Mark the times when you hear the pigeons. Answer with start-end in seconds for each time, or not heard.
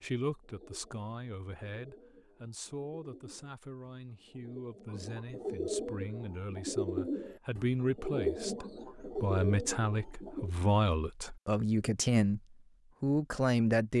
0.0-10.5.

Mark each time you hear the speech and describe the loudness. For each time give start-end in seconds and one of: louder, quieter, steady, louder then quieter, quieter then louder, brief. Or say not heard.
0.0-12.4 louder
13.0-13.9 brief.